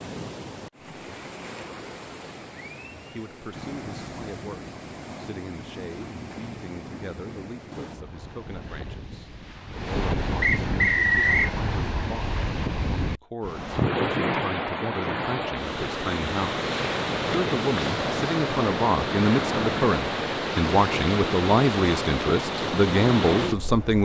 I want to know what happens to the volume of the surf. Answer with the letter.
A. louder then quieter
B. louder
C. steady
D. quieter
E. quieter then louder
B.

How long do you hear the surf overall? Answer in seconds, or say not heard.
24 s.